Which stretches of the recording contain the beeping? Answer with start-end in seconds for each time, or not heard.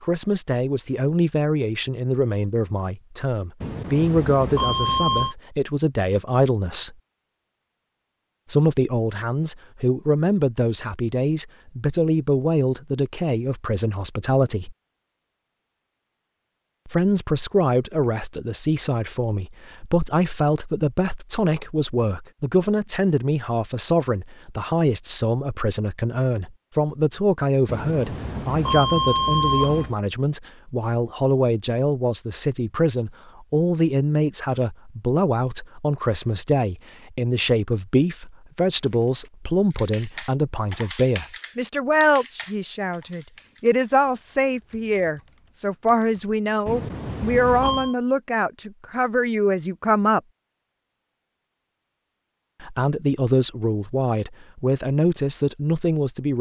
3.6-5.3, 27.6-29.9, 46.6-48.0.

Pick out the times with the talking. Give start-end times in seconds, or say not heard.
0.0-7.0, 8.5-14.8, 16.9-50.2, 52.6-56.3.